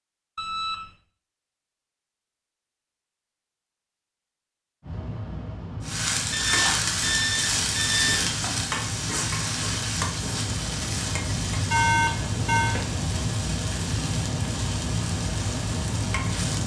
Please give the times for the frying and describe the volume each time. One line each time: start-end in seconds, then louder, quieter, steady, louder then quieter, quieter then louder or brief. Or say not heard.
5.8-16.6 quieter.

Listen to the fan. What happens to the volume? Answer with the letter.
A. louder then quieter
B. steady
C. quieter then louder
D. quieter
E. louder
E.